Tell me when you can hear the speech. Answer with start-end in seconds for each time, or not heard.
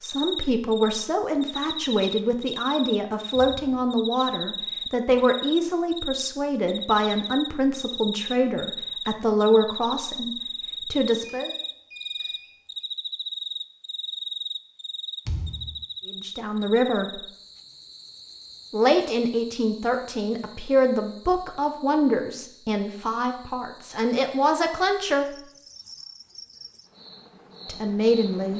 0.0-11.5, 16.1-17.2, 18.7-25.4, 27.6-28.5.